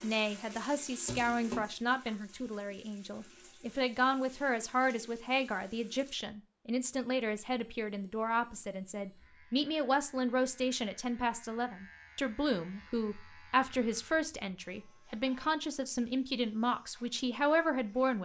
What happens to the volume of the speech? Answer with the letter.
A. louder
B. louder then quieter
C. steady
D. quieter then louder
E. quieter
C.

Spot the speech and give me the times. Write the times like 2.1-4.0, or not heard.
0.0-18.1.